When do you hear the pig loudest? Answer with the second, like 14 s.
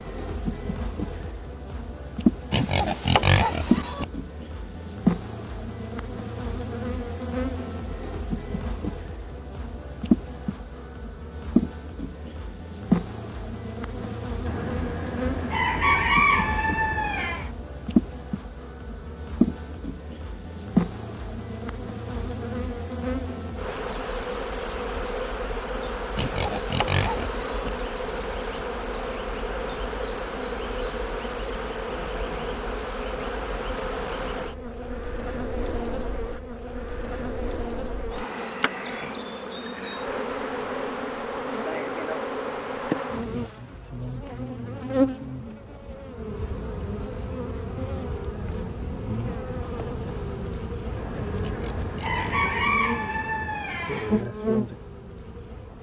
3 s.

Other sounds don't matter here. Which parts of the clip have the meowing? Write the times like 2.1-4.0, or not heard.
not heard.